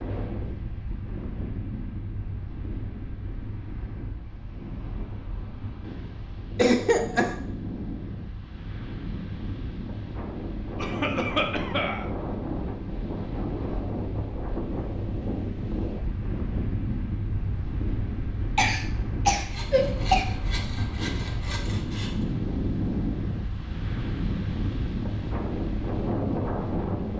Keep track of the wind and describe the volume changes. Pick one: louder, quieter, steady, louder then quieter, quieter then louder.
louder.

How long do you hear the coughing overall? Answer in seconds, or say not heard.
4 s.